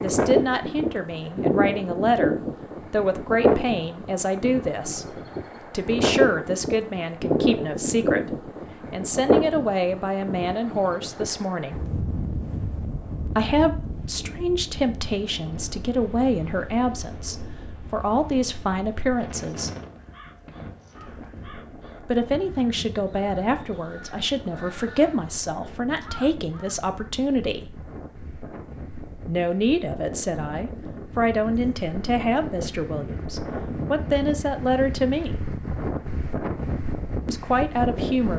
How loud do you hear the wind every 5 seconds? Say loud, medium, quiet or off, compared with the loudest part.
loud, loud, medium, quiet, quiet, quiet, medium, medium.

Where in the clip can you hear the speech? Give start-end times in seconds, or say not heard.
0.0-11.8, 13.2-19.7, 22.0-27.8, 29.2-35.4, 37.2-38.3.